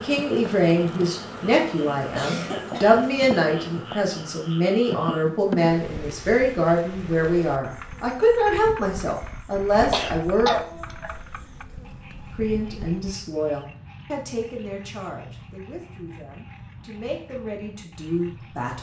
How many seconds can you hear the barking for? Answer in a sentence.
You can't hear the barking here.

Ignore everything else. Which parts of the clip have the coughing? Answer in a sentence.
The coughing can be heard from 1.9 to 3.1 s and from 9.9 to 11.2 s.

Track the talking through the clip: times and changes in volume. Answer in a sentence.
You can hear the talking from 0.0 to 10.6 s, at a steady volume; and from 12.3 to 18.7 s, getting quieter then louder.